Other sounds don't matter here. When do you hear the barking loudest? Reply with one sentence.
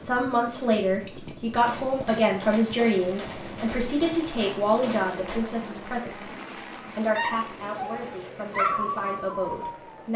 The loudest moment of the barking is at 9 seconds.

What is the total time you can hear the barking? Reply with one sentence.
You can hear the barking for 3 seconds altogether.